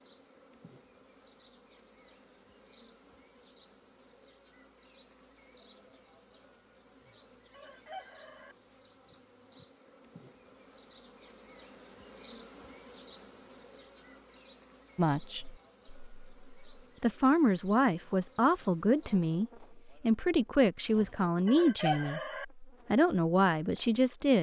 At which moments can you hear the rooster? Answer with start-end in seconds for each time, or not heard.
7.0-8.6, 20.9-22.4.